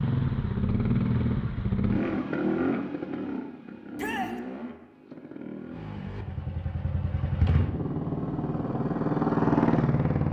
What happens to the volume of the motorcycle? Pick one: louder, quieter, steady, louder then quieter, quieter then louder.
quieter then louder.